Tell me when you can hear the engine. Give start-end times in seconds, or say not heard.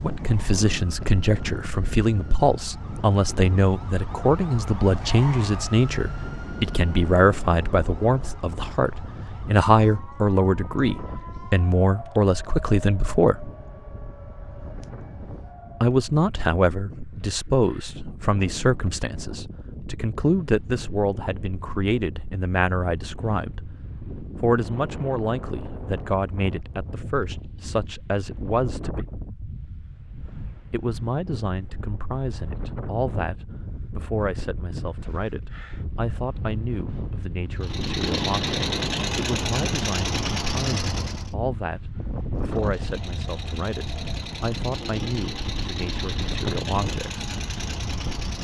37.6-41.3, 42.4-48.3.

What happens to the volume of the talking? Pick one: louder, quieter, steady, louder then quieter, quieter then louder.
quieter.